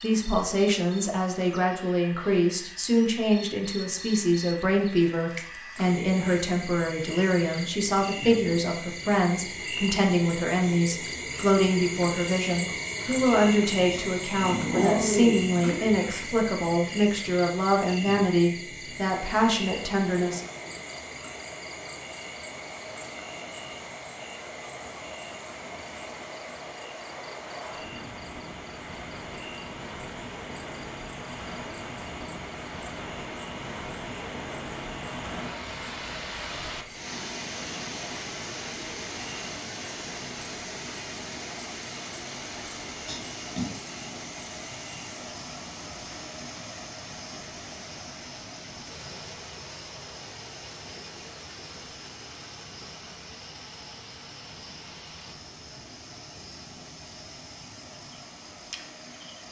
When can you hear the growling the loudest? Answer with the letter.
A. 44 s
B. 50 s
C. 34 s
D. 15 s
D.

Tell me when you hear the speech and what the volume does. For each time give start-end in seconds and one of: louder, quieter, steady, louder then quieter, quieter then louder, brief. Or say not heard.
0.0-20.4 steady.